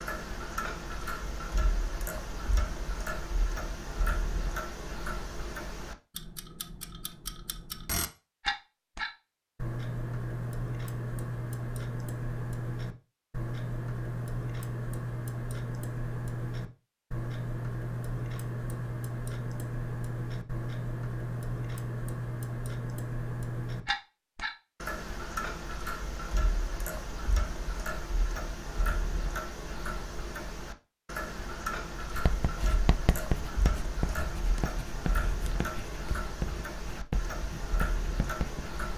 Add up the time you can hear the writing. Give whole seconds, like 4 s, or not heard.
7 s.